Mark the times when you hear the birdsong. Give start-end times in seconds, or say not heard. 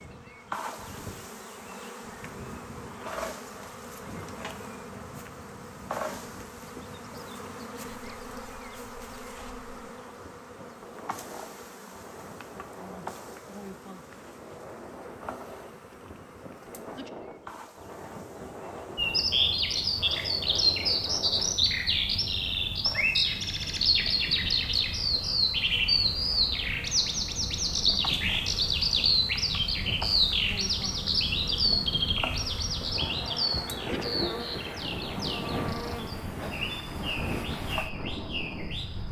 18.9-39.0.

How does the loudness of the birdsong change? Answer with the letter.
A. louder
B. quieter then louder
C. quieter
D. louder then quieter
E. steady
C.